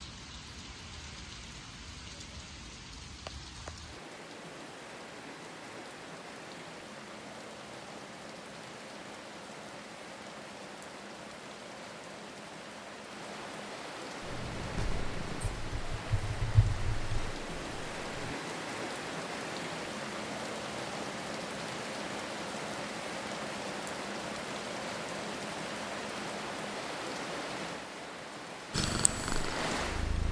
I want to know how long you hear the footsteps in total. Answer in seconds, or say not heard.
not heard.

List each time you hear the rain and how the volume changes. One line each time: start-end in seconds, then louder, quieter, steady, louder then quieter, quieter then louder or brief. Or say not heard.
0.0-30.2 louder.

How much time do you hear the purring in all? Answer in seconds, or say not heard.
6 s.